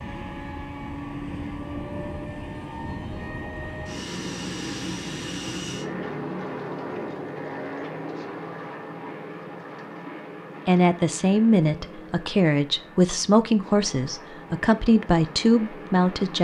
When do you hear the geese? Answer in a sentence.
The geese can't be heard in this clip.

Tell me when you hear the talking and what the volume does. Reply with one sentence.
You can hear the talking from 10.7 to 16.3 s, at a steady volume.